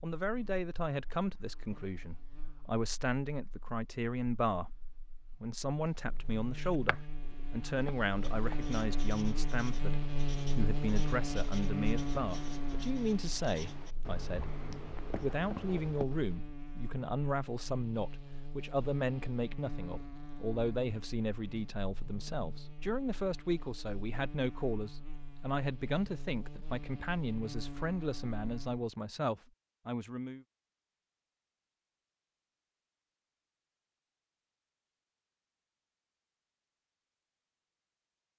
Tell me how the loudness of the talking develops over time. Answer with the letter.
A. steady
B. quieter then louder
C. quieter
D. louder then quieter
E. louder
A.